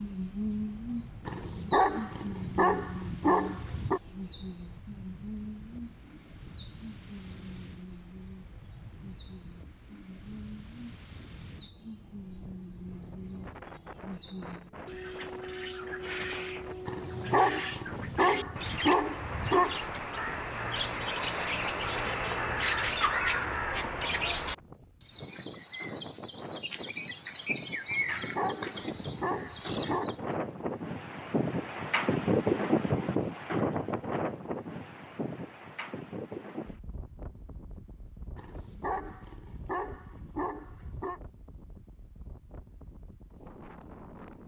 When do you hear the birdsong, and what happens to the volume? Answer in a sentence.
The birdsong can be heard from 0.0 to 30.4 s, getting quieter then louder.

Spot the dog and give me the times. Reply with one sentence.
You can hear the dog from 1.2 to 4.0 s, from 16.9 to 19.8 s, from 27.9 to 30.2 s and from 38.4 to 41.2 s.